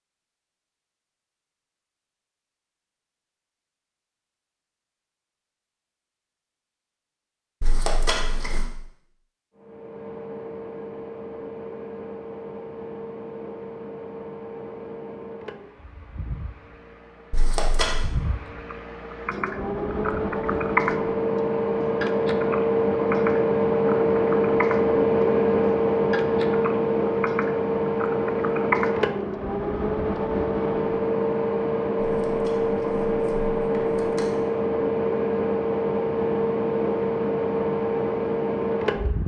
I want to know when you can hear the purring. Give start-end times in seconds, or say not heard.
not heard.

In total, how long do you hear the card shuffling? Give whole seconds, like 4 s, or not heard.
4 s.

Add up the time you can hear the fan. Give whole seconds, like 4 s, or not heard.
30 s.